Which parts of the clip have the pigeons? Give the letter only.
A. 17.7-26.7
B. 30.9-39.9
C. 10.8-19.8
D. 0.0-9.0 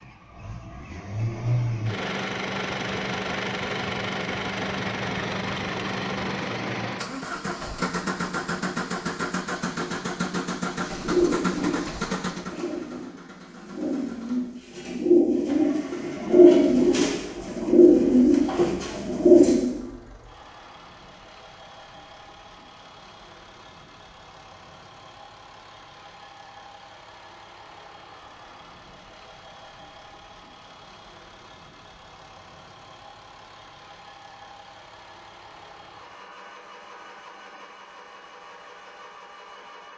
C.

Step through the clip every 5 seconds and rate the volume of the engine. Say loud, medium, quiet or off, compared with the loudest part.
loud, loud, loud, quiet, quiet, quiet, quiet, quiet.